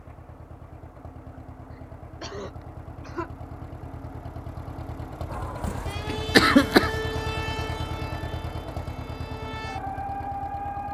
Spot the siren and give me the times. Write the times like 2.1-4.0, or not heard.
5.2-10.8.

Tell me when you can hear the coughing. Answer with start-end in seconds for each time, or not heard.
1.7-3.3, 5.7-6.9.